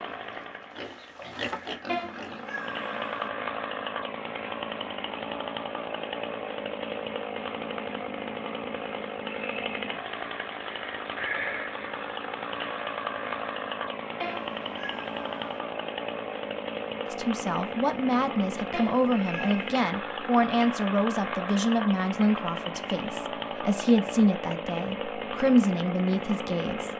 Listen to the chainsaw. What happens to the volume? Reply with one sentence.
The loudness of the chainsaw stays about the same.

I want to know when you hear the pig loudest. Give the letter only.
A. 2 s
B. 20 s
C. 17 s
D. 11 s
A.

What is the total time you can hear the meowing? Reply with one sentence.
You can hear the meowing for 4 seconds altogether.